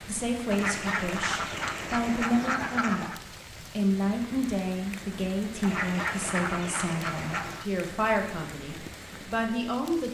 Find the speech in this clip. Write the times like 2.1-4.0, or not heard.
0.1-3.1, 3.8-10.0.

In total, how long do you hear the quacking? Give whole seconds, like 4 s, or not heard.
5 s.